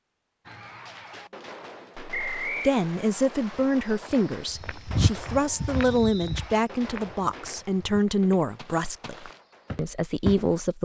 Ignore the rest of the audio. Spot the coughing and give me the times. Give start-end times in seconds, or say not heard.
not heard.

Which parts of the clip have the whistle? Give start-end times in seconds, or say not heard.
2.1-2.8, 5.8-6.4.